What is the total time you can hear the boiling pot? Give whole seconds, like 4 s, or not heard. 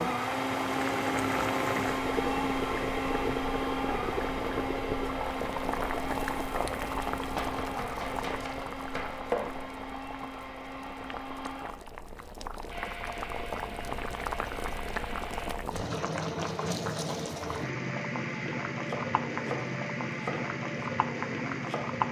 22 s.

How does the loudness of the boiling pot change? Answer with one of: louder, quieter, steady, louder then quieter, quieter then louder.
quieter then louder.